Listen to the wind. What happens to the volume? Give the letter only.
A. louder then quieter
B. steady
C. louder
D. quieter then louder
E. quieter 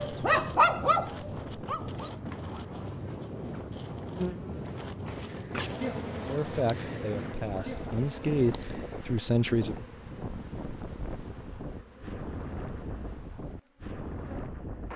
B.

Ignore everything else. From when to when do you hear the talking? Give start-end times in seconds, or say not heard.
6.2-9.8.